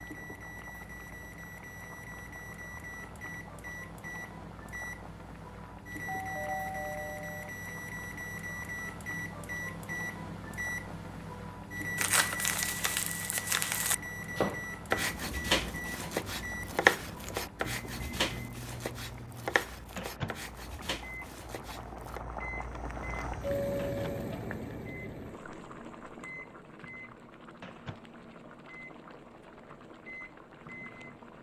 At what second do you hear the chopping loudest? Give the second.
17 s.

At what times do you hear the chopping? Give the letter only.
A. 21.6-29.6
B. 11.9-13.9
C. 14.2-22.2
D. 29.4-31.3
C.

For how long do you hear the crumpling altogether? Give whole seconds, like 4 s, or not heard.
2 s.